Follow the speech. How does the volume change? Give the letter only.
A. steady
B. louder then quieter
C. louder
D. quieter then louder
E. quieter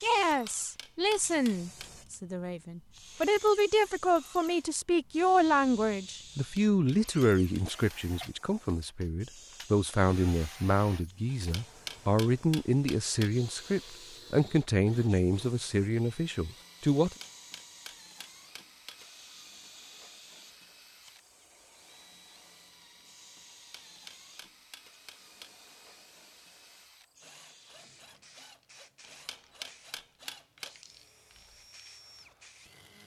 A.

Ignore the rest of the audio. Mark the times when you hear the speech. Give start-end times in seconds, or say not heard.
0.0-17.1.